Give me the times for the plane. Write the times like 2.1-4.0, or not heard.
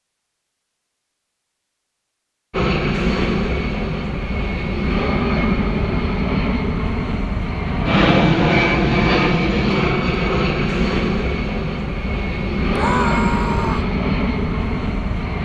2.5-15.3.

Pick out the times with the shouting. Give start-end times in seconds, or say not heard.
12.7-13.9.